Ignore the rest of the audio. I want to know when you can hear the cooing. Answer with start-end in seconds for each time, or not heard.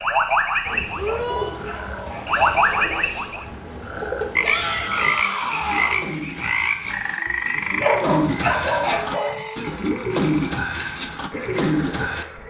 0.7-12.2.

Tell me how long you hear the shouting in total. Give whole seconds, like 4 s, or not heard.
3 s.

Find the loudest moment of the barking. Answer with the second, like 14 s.
8 s.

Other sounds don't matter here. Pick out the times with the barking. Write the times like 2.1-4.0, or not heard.
1.0-2.4, 7.5-9.4.